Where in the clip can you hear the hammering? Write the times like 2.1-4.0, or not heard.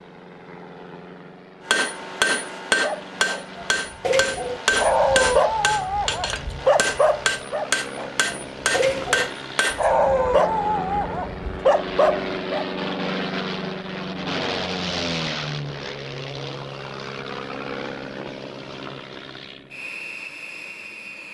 1.6-9.9.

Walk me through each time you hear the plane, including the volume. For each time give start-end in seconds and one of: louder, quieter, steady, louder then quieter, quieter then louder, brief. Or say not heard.
0.0-21.2 louder then quieter.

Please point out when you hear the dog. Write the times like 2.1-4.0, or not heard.
2.8-12.7.